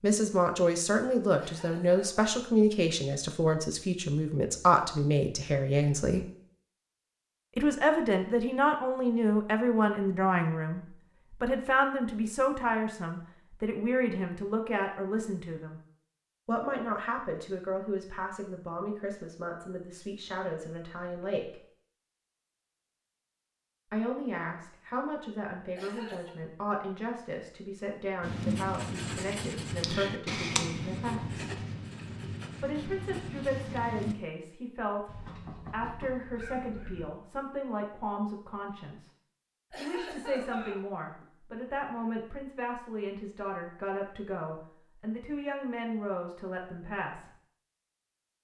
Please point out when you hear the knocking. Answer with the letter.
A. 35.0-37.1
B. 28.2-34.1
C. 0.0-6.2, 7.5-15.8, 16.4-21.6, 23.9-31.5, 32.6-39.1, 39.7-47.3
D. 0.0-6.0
A.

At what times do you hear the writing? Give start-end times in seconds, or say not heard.
28.2-34.1.